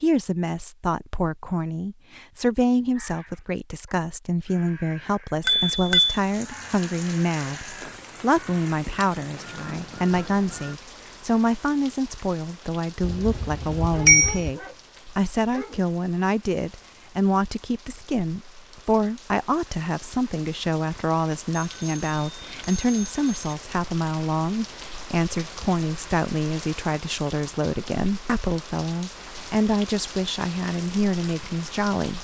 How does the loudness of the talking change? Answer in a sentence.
The volume of the talking stays about the same.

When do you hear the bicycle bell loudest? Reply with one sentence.
The loudest moment of the bicycle bell is at 14 seconds.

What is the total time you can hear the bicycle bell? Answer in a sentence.
The bicycle bell can be heard for 4 seconds in total.